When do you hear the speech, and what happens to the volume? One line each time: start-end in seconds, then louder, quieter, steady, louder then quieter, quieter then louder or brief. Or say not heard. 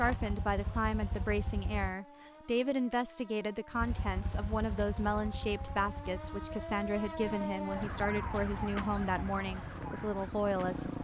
0.0-10.9 steady.